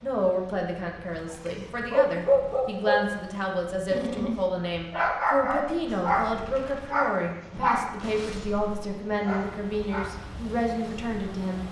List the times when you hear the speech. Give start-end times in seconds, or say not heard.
0.0-11.6.